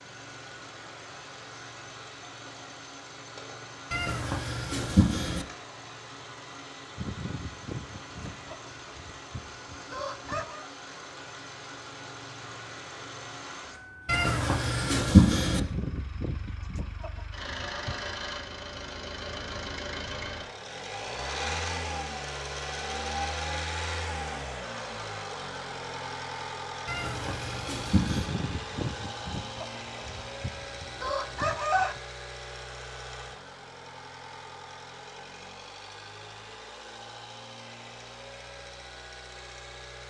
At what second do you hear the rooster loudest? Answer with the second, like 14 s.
32 s.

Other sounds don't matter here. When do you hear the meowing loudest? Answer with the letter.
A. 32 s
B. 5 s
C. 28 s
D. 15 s
D.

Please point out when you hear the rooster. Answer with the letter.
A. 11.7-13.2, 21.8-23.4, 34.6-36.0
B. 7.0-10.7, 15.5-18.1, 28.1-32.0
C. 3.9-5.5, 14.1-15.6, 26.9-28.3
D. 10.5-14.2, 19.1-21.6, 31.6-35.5
B.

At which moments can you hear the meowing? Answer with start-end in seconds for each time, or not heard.
3.9-5.5, 14.1-15.6, 26.9-28.3.